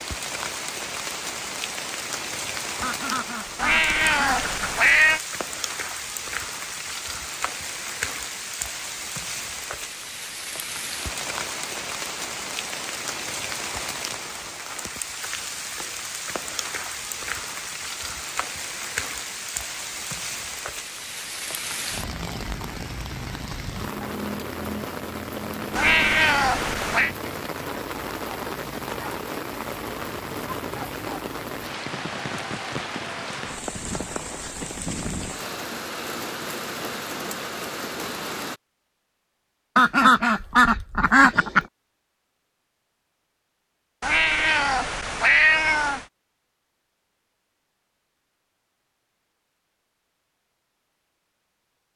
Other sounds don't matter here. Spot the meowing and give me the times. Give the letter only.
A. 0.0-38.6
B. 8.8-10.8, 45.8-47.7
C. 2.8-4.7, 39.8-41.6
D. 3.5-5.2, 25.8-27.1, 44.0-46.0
D.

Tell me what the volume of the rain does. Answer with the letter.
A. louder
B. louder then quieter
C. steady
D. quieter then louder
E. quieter
C.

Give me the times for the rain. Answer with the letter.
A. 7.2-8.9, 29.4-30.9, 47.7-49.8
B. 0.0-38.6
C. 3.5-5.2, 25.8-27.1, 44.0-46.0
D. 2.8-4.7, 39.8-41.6
B.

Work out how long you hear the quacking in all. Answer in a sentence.
You can hear the quacking for 4 seconds altogether.